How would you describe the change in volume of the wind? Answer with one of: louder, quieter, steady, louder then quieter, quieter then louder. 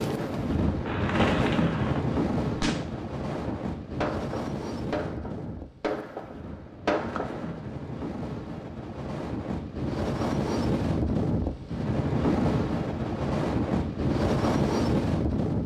quieter then louder.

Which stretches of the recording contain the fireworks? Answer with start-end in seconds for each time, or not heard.
0.8-2.0, 2.6-7.6.